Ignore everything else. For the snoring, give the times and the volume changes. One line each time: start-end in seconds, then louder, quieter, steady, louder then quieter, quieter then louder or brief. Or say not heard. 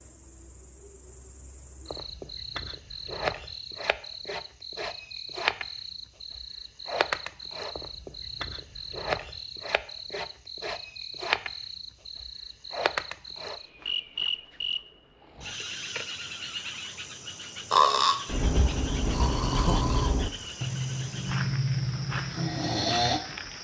17.7-23.2 steady.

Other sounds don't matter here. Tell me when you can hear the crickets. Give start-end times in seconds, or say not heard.
0.0-23.5.